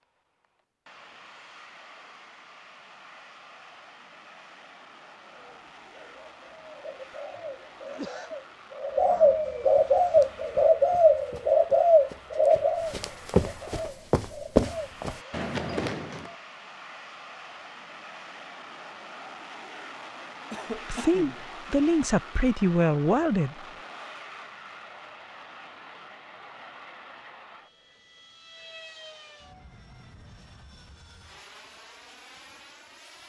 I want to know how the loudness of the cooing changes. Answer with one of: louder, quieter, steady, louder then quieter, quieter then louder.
louder then quieter.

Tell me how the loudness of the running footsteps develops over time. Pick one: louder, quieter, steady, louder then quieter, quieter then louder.
louder then quieter.